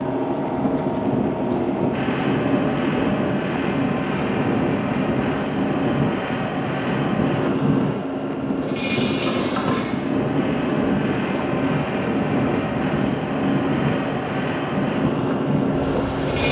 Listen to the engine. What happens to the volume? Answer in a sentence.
The loudness of the engine stays about the same.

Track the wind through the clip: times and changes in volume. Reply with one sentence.
You can hear the wind from 0.0 to 16.4 s, at a steady volume.